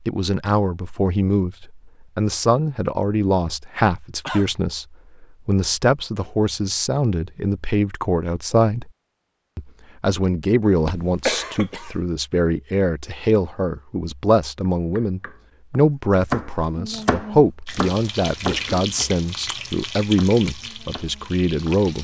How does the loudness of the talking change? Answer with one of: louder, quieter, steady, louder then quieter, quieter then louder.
steady.